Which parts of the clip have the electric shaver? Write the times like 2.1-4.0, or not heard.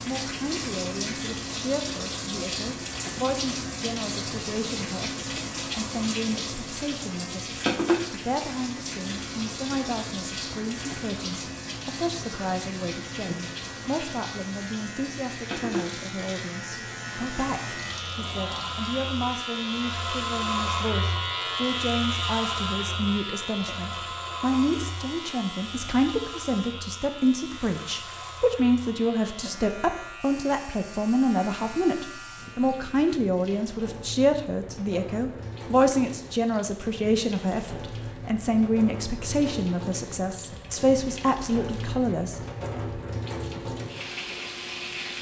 0.0-33.2.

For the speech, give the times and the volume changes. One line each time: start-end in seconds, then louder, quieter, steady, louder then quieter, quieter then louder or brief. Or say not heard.
0.0-42.8 louder.